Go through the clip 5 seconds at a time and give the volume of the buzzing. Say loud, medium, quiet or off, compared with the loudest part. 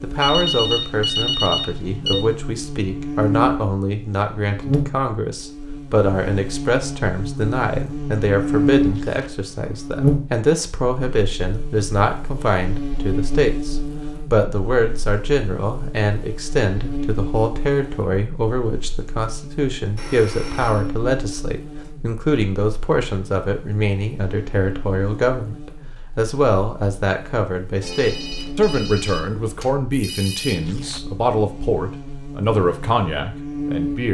loud, loud, loud, medium, medium, quiet, medium.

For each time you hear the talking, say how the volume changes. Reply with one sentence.
You can hear the talking from 0.0 to 34.0 s, at a steady volume.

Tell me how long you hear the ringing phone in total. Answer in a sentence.
You can hear the ringing phone for 6 seconds altogether.